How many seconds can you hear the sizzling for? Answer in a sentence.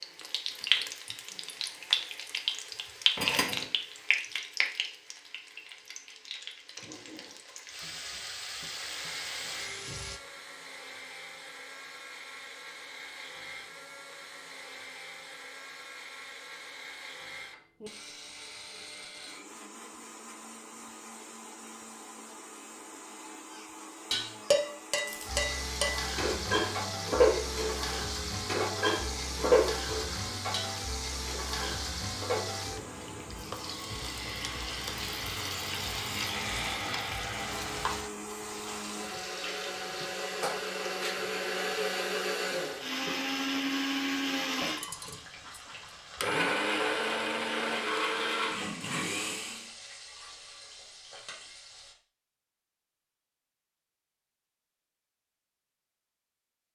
The sizzling can be heard for 37 seconds in total.